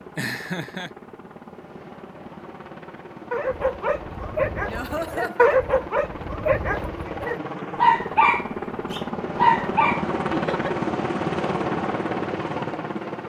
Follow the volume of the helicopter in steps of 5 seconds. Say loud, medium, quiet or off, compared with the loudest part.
quiet, medium, loud.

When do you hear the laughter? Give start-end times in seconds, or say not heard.
0.1-0.9, 4.7-5.5, 10.3-10.8.